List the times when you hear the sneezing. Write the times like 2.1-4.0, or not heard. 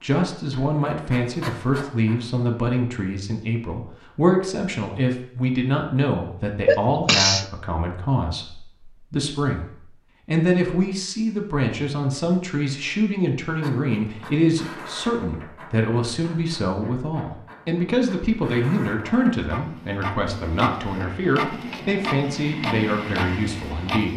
6.7-7.5.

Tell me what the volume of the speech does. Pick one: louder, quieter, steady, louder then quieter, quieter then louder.
steady.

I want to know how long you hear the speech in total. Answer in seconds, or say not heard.
24 s.